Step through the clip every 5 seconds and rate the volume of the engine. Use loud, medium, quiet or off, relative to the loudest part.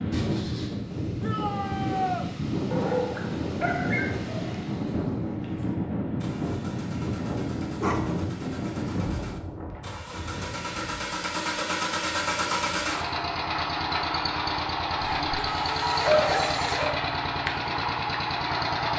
quiet, quiet, loud, loud.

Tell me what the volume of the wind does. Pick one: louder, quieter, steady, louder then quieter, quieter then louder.
quieter.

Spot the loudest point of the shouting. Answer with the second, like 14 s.
2 s.